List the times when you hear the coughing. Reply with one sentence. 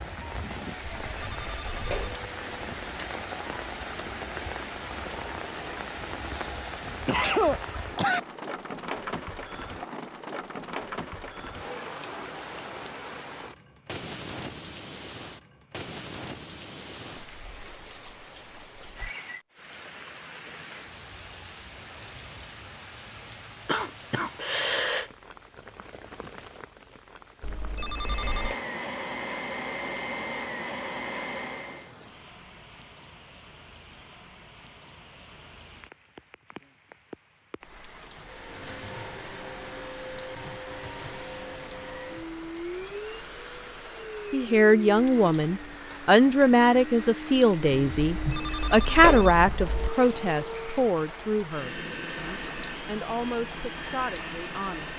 The coughing can be heard from 6.2 to 8.2 s, from 23.6 to 25.1 s and from 47.7 to 48.6 s.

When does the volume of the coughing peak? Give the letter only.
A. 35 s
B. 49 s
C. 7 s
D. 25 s
C.